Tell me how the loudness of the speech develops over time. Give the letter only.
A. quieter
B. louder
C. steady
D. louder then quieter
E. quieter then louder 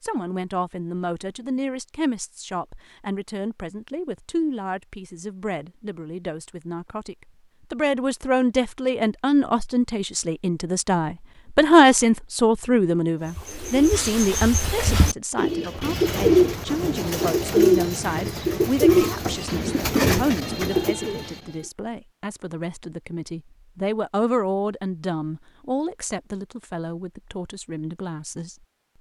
D.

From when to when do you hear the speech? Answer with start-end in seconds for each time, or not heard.
0.0-28.6.